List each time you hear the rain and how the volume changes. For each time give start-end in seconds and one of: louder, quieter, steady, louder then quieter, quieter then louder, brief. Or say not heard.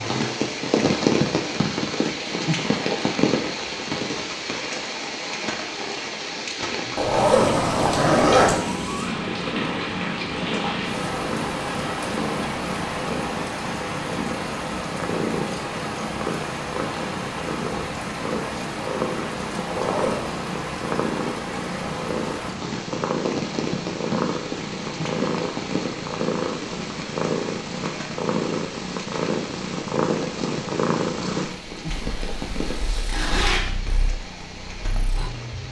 0.0-35.6 quieter.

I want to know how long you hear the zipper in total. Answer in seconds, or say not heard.
4 s.